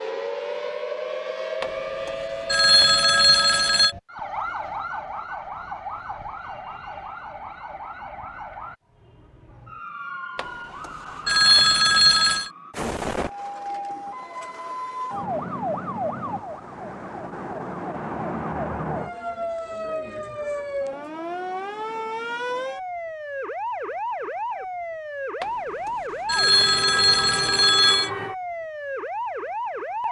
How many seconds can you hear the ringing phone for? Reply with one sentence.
The ringing phone can be heard for 7 seconds in total.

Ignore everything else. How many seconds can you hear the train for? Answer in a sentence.
You can't hear the train here.